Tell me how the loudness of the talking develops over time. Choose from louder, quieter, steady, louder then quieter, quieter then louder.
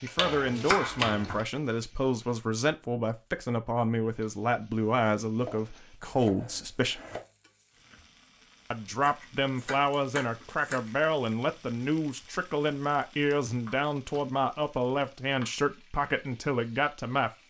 steady.